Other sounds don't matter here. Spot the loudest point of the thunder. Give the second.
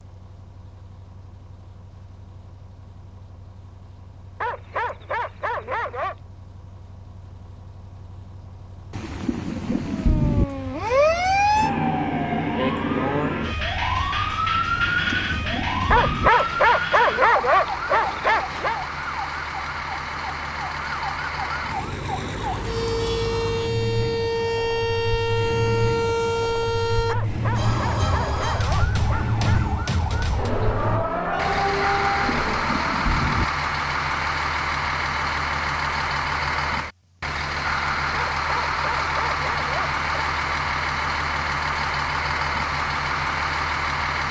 10 s.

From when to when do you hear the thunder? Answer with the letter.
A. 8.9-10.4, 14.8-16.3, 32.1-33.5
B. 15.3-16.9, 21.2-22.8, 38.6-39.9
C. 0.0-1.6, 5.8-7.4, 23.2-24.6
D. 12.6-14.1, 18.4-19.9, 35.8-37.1
A.